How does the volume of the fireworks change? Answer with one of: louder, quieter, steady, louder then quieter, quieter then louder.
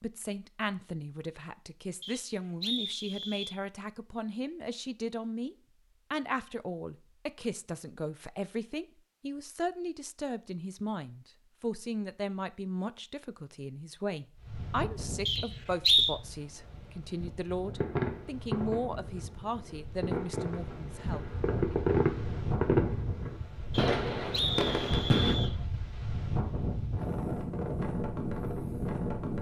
louder.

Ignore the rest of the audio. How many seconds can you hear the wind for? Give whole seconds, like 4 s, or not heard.
15 s.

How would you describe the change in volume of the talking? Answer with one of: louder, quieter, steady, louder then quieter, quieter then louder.
steady.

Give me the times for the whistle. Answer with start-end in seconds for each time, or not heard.
2.0-3.5, 15.2-16.1, 23.7-25.6.